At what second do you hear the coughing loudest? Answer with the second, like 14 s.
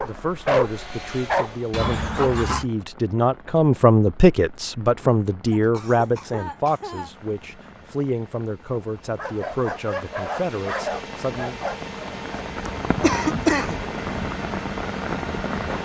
13 s.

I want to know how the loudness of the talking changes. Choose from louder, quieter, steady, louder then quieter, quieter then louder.
louder then quieter.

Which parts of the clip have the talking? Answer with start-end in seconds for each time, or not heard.
0.0-11.8.